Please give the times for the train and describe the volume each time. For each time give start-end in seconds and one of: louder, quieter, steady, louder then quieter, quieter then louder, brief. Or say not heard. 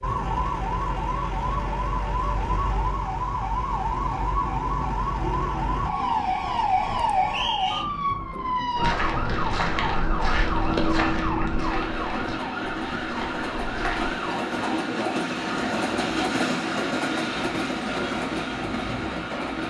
0.0-19.6 louder.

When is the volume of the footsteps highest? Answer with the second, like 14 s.
11 s.